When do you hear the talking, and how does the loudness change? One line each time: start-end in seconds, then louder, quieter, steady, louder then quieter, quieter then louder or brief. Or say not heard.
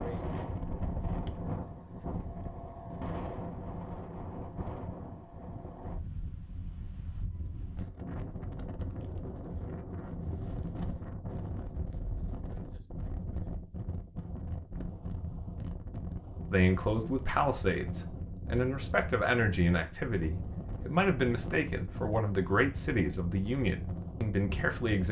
16.5-25.0 steady.